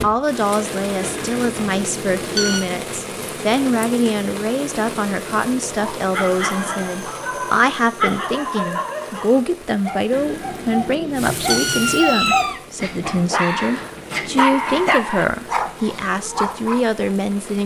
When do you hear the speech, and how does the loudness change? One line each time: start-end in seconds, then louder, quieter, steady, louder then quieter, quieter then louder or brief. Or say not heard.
0.0-17.6 steady.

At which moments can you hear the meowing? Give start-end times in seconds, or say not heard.
0.9-2.6, 10.1-12.6.